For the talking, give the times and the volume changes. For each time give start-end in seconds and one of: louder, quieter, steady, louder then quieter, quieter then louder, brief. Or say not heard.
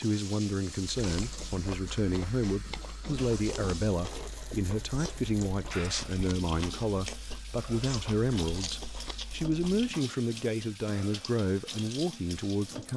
0.0-12.9 steady.